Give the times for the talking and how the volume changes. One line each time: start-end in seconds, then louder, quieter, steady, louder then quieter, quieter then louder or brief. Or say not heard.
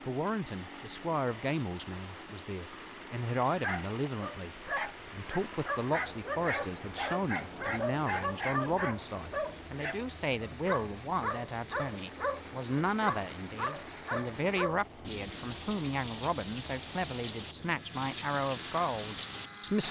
0.1-19.8 steady.